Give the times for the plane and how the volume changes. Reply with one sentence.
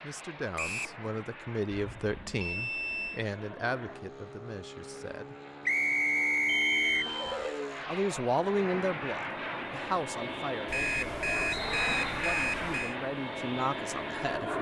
You can hear the plane from 0.0 to 14.5 s, getting louder.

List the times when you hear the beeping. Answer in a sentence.
You can hear the beeping from 1.7 to 3.2 s, from 6.5 to 7.7 s and from 10.7 to 12.9 s.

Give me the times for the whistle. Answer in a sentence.
The whistle can be heard from 0.6 to 1.0 s, from 5.7 to 7.0 s and from 11.5 to 12.2 s.